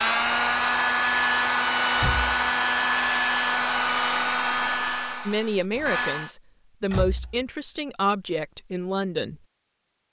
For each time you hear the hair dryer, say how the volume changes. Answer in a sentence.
You can hear the hair dryer from 0.0 to 6.3 s, getting quieter.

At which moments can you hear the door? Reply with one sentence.
The door can be heard from 1.9 to 2.4 s and from 6.9 to 7.5 s.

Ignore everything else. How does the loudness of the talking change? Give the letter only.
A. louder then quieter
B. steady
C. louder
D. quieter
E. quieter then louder
B.